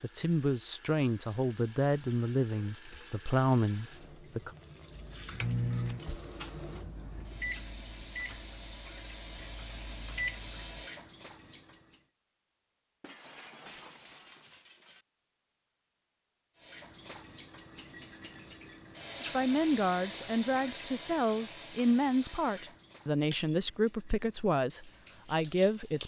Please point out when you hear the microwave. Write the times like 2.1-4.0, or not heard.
4.9-10.8.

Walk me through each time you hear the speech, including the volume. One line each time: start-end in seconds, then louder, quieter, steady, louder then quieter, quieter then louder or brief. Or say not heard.
0.0-4.5 quieter then louder
19.2-26.0 steady.